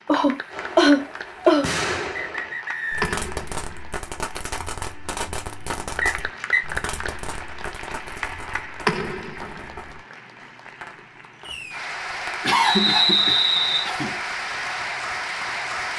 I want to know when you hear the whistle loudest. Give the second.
13 s.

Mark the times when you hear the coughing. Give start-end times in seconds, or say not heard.
0.1-1.7, 12.4-14.2.